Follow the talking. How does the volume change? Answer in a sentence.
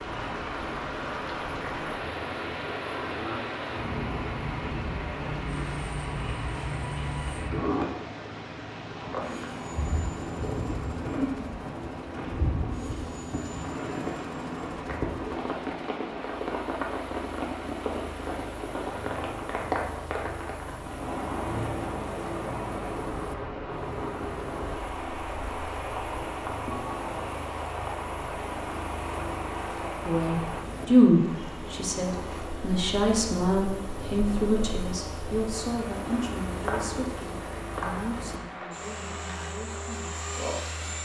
The volume of the talking goes down.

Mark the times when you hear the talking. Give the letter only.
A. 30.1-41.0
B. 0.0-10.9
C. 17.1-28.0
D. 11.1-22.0
A.